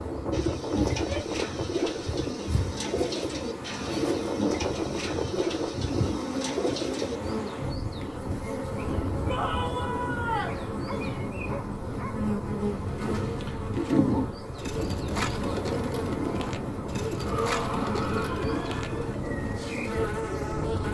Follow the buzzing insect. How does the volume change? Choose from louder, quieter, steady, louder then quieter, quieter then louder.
steady.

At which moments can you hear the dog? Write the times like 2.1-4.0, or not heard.
10.8-12.2.